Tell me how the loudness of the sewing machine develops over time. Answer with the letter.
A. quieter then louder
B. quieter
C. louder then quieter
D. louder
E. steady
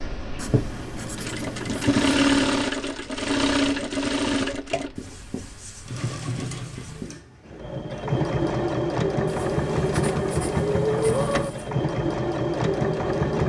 A.